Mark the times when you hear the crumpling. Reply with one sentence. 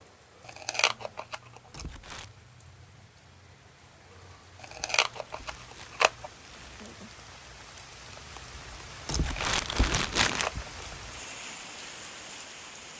You can hear the crumpling from 1.7 to 2.3 s, from 4.9 to 7.0 s and from 9.1 to 10.5 s.